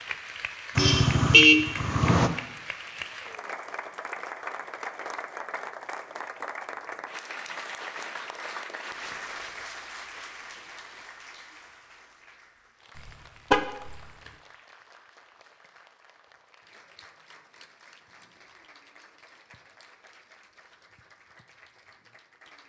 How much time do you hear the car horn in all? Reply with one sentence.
You can hear the car horn for 2 seconds altogether.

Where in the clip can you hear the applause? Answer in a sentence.
The applause can be heard from 0.0 to 22.6 s.